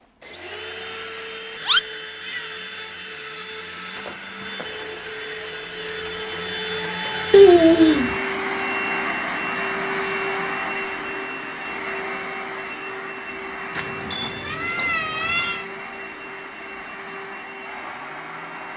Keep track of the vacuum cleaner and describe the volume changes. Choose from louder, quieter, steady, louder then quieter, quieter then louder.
louder then quieter.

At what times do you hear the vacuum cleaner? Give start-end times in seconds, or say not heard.
0.0-18.7.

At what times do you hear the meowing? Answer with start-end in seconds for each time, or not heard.
1.6-2.5, 7.3-8.2, 13.8-15.7.